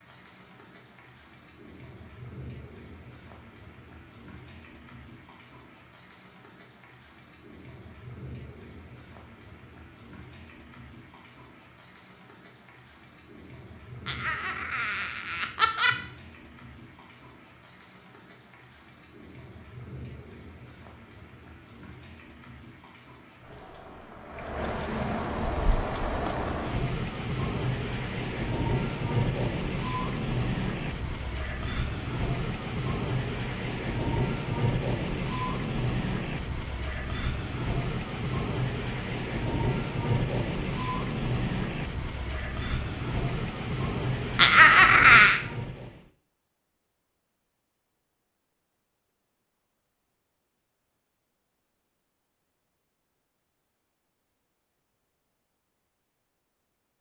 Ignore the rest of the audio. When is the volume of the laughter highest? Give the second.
45 s.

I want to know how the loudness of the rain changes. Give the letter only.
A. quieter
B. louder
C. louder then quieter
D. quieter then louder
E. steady
B.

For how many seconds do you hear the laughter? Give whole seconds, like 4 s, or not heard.
3 s.